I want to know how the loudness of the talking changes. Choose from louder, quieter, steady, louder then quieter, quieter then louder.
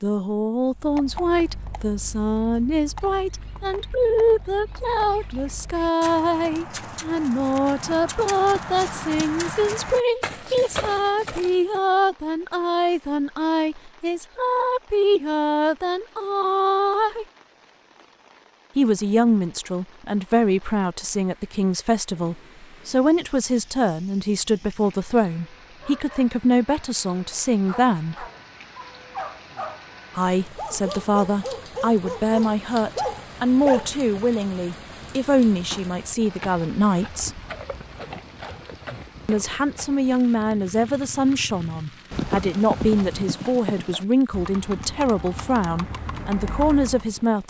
steady.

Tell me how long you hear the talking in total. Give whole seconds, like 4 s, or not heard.
42 s.